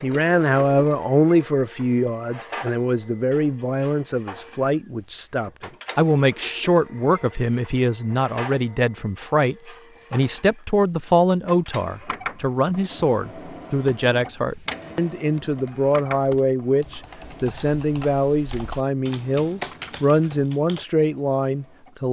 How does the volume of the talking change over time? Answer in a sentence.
The loudness of the talking stays about the same.